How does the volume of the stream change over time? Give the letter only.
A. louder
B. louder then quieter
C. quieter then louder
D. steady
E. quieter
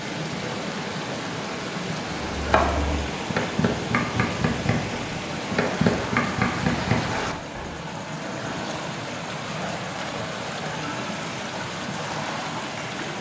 D.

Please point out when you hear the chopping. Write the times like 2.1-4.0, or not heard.
2.3-7.7.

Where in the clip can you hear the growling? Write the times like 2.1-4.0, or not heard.
not heard.